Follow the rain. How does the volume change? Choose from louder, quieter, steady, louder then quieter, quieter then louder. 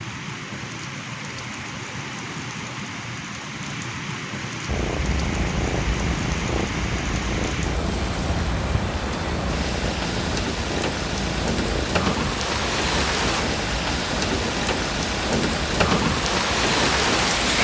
louder.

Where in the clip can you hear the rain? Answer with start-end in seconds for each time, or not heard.
0.0-17.6.